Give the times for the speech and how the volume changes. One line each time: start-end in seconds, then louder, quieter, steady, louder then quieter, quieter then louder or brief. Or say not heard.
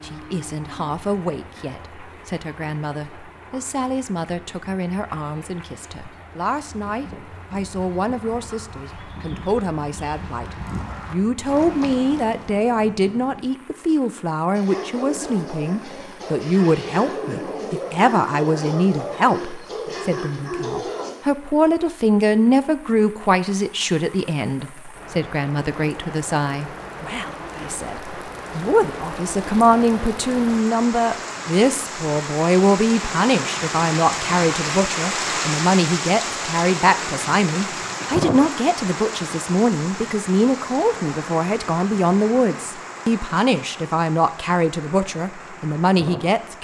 0.0-46.5 louder.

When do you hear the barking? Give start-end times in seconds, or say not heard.
14.5-21.1.